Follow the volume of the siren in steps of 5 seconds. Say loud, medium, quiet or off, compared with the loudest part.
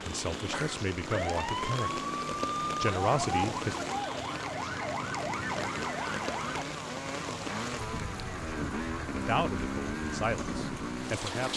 loud, loud, off.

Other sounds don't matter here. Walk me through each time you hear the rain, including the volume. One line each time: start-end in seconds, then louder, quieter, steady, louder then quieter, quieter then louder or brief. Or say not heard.
0.0-11.5 steady.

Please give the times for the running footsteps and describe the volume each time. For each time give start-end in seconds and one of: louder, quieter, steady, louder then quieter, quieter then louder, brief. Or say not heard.
not heard.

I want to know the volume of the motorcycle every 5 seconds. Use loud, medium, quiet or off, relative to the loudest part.
medium, loud, loud.